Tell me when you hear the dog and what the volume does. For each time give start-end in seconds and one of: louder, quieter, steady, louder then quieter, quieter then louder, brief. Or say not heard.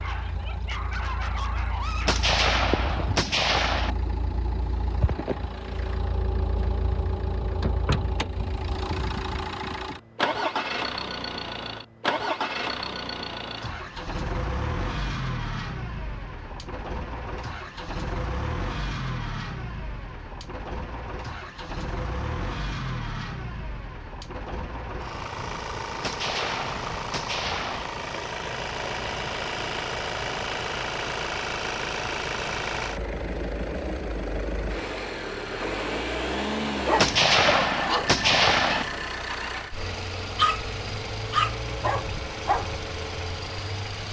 0.0-2.4 brief
36.7-42.7 quieter then louder.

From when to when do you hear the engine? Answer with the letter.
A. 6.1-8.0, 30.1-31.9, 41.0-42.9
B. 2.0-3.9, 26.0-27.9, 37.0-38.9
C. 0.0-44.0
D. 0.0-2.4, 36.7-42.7
C.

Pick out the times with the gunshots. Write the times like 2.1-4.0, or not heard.
2.0-3.9, 26.0-27.9, 37.0-38.9.